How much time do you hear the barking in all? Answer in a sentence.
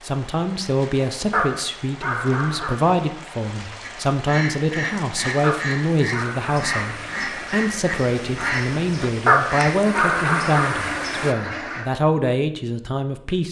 The barking can be heard for 5 seconds in total.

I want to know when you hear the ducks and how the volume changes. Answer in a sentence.
The ducks can be heard from 3.8 to 11.8 s, at a steady volume.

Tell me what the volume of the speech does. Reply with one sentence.
The loudness of the speech stays about the same.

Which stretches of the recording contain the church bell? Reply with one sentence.
The church bell can't be heard in this clip.